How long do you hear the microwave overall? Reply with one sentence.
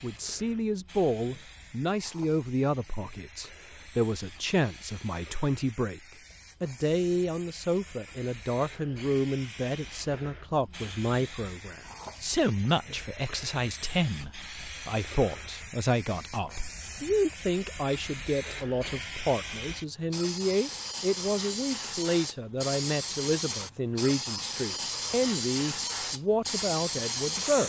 The microwave can't be heard in this clip.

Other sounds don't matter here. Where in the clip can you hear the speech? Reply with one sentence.
You can hear the speech from 0.0 to 6.0 s and from 6.6 to 27.6 s.